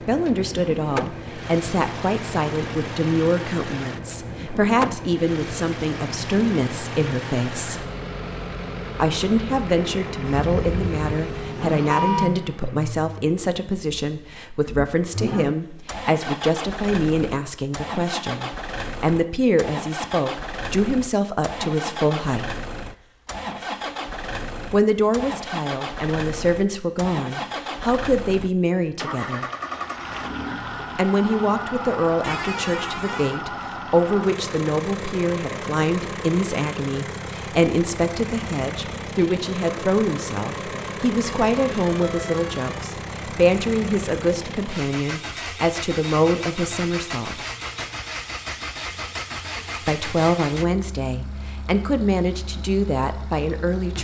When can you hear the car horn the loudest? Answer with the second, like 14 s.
12 s.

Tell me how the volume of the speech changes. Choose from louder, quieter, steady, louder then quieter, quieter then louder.
steady.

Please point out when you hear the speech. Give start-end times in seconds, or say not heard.
0.0-7.9, 9.0-22.6, 24.7-29.4, 30.9-47.5, 49.8-54.0.